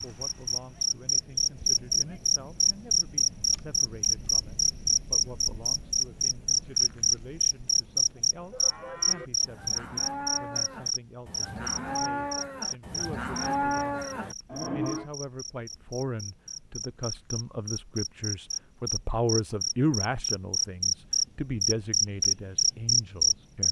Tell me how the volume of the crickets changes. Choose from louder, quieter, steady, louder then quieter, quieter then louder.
quieter then louder.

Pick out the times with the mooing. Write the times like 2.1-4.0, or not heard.
8.3-15.1.